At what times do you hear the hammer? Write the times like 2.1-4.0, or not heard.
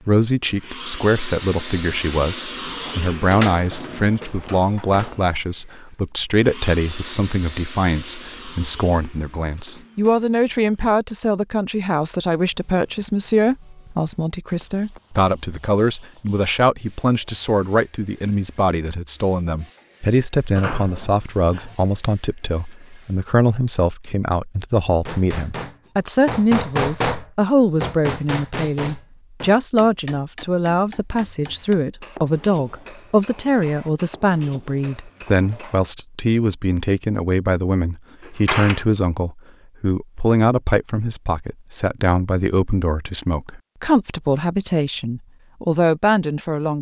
25.1-35.8.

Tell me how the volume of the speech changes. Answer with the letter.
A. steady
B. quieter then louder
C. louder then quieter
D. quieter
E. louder
A.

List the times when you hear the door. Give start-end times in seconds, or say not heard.
2.6-5.2, 20.6-21.8, 38.2-38.9.